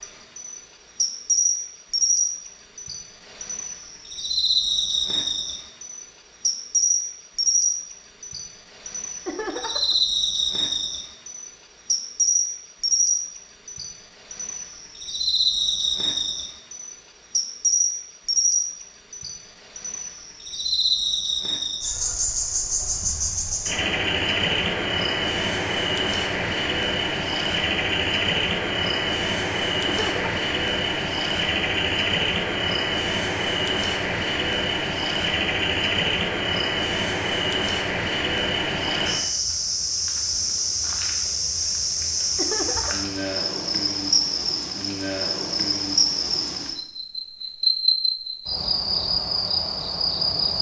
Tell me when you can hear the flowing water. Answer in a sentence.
The flowing water can't be heard in this clip.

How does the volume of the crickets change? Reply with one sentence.
The loudness of the crickets stays about the same.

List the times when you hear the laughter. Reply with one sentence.
You can hear the laughter from 9.2 to 9.9 s, from 29.9 to 30.3 s and from 42.4 to 43.1 s.